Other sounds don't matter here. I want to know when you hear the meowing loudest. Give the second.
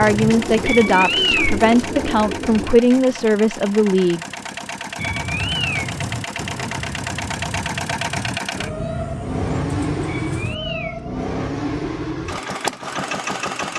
1 s.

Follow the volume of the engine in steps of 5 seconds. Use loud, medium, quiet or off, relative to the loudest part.
medium, loud, loud.